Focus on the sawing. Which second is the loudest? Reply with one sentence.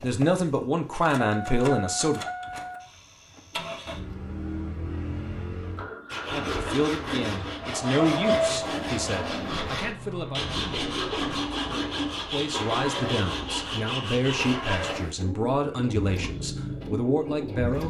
The loudest moment of the sawing is at 8 seconds.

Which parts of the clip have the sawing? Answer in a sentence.
The sawing can be heard from 6.0 to 14.9 s.